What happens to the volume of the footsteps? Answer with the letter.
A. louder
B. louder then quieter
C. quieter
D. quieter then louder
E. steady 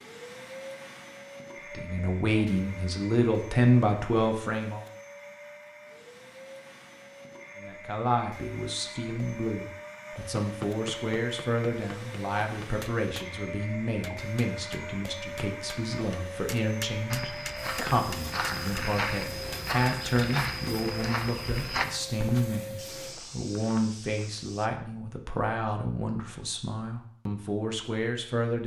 C.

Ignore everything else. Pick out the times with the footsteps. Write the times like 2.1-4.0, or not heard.
17.1-24.7.